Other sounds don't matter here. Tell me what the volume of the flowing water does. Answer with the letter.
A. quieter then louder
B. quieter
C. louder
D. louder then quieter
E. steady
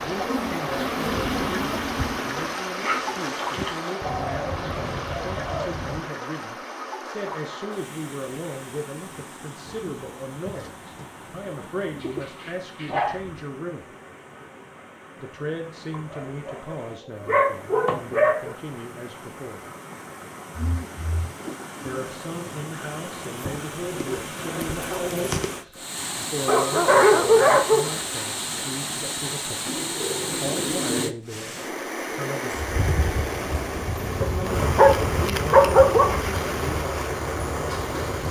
A.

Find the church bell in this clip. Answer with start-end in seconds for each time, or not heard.
not heard.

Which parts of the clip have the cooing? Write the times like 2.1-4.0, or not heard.
4.0-6.0, 9.7-12.3, 20.6-22.1, 29.6-31.2.